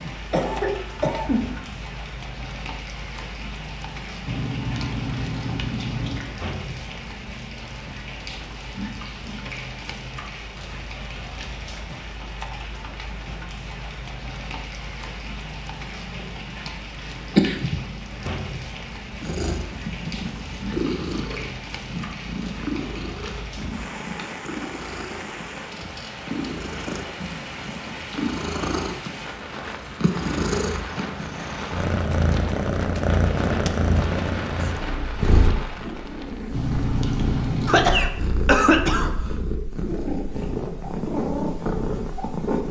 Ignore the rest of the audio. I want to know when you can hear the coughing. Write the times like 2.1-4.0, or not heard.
0.3-1.8, 17.4-18.3, 37.6-39.3.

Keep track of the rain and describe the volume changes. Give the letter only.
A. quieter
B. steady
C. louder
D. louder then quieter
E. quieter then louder
B.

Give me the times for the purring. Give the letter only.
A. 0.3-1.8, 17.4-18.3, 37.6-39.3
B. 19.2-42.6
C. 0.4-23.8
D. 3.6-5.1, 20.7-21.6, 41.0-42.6
B.